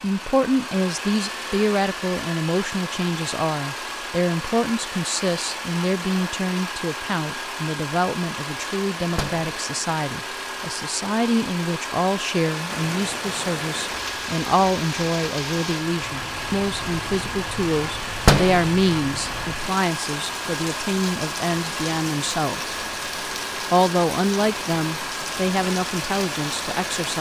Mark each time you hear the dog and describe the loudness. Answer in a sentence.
You can't hear the dog here.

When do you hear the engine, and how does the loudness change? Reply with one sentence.
You can hear the engine from 0.0 to 27.1 s, at a steady volume.